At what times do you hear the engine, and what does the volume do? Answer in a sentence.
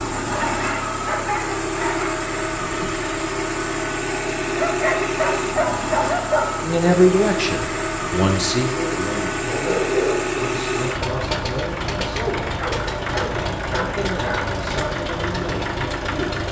You can hear the engine from 0.0 to 16.4 s, at a steady volume.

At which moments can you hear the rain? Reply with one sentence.
You can't hear the rain here.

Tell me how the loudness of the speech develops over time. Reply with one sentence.
The loudness of the speech goes down.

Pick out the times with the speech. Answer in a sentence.
The speech can be heard from 6.6 to 16.4 s.